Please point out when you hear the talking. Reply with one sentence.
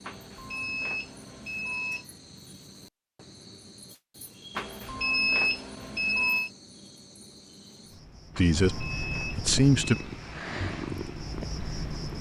The talking can be heard from 8.3 to 9.9 s.